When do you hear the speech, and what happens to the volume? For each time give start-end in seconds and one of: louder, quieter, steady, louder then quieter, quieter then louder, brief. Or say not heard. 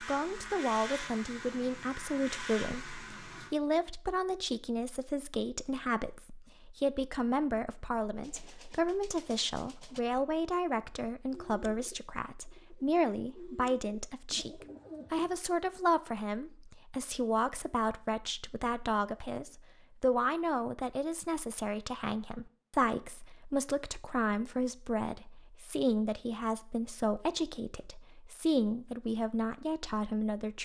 0.0-30.6 steady.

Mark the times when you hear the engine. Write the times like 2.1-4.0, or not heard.
0.0-3.5.